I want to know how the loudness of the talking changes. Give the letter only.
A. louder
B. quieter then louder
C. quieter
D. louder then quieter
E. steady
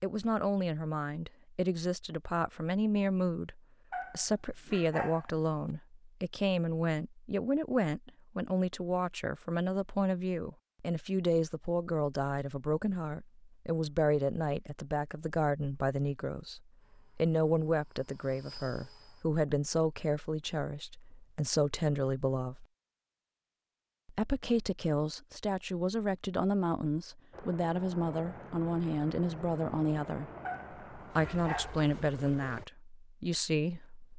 E.